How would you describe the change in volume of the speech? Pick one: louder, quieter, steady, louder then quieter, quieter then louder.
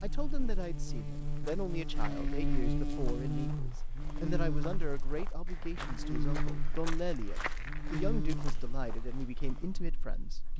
steady.